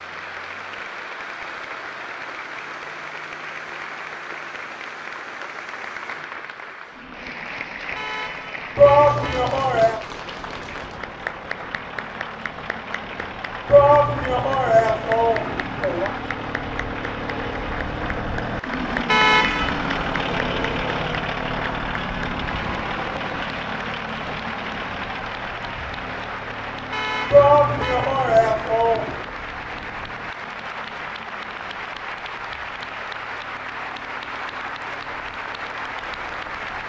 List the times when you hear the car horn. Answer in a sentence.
The car horn can be heard from 8.0 to 9.6 s, from 19.1 to 19.8 s and from 26.9 to 28.2 s.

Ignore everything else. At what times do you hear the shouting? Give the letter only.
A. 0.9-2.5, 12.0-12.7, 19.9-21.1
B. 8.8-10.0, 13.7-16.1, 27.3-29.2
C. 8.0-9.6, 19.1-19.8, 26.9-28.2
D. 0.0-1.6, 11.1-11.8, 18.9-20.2
B.